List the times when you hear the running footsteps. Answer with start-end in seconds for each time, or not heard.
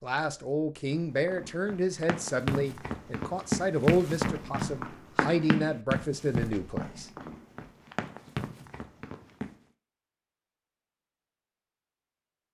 0.8-9.6.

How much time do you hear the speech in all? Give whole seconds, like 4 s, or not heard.
7 s.